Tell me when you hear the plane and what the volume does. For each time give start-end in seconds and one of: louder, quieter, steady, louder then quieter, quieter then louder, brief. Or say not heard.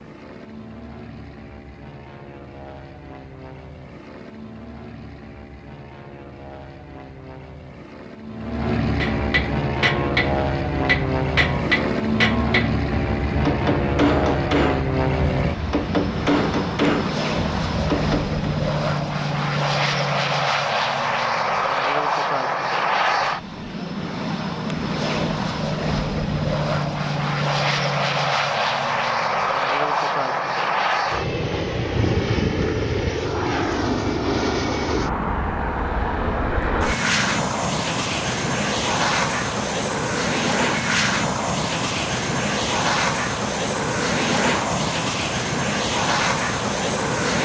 0.0-47.3 louder.